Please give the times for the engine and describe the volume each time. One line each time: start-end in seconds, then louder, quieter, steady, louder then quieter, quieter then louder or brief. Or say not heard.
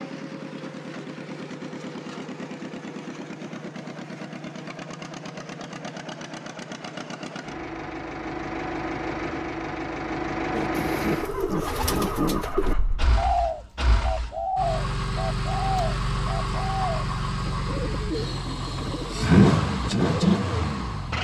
0.0-21.1 louder.